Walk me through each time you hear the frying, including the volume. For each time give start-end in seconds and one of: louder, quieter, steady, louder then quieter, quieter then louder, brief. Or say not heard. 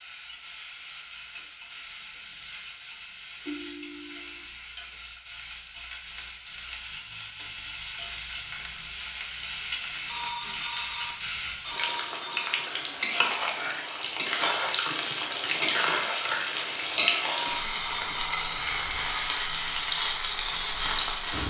0.0-21.4 louder.